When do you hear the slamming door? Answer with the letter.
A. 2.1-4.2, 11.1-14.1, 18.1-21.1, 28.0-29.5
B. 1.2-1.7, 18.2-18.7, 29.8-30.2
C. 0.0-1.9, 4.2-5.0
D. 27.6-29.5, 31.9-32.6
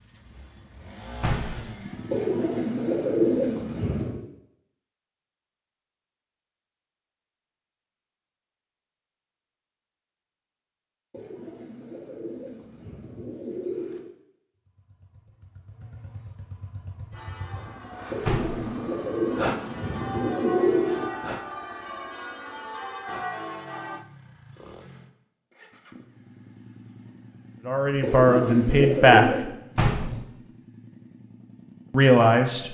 B.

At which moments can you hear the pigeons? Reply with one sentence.
You can hear the pigeons from 2.1 to 4.2 s, from 11.1 to 14.1 s, from 18.1 to 21.1 s and from 28.0 to 29.5 s.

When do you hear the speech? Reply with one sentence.
You can hear the speech from 27.6 to 29.5 s and from 31.9 to 32.6 s.